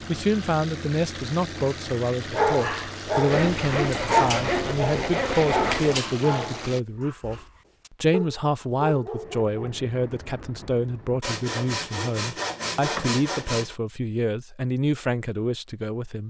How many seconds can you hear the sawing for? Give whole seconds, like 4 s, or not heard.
5 s.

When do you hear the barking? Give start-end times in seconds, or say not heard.
2.3-9.8.